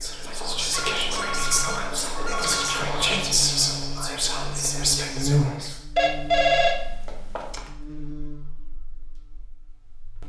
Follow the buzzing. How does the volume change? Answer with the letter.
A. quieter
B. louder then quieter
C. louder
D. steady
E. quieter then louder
B.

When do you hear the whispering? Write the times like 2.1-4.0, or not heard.
0.0-5.8.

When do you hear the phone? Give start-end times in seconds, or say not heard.
0.7-3.2, 6.0-7.7.